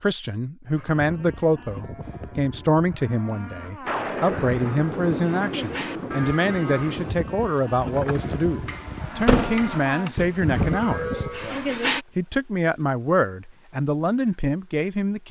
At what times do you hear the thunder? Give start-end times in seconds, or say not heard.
3.9-7.2.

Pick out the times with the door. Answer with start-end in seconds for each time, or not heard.
9.2-10.6.